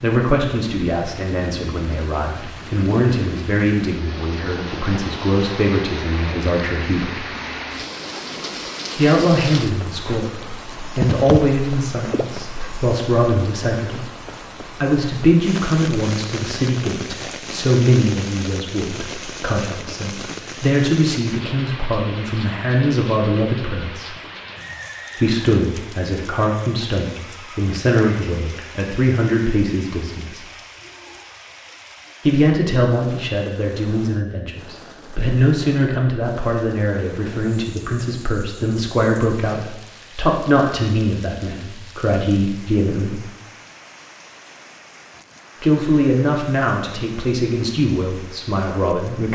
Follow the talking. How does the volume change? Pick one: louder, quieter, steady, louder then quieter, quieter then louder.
steady.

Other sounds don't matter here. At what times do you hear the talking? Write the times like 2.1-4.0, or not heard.
0.0-7.2, 8.9-14.1, 14.8-24.1, 25.1-30.4, 32.2-43.2, 45.6-49.3.